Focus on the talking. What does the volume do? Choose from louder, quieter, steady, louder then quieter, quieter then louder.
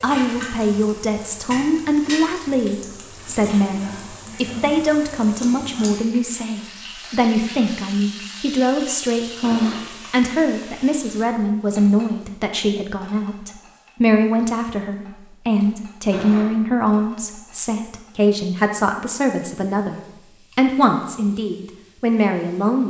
steady.